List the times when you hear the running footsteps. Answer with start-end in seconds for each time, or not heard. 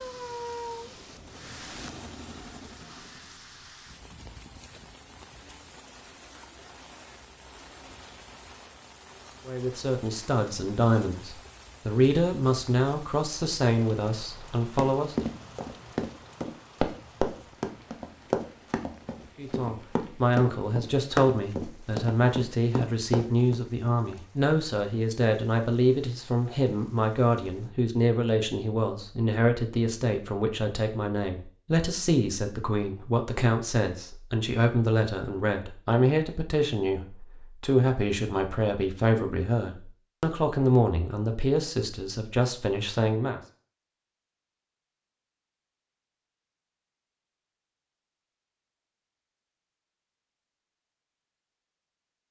14.8-23.6.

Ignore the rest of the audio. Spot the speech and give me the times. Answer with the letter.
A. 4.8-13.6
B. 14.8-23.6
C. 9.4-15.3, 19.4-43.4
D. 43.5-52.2
C.